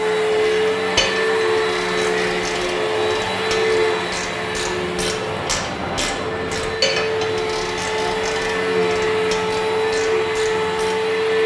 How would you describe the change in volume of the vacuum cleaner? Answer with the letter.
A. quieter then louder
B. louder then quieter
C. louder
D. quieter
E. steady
A.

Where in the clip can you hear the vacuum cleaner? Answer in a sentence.
The vacuum cleaner can be heard from 0.0 to 11.4 s.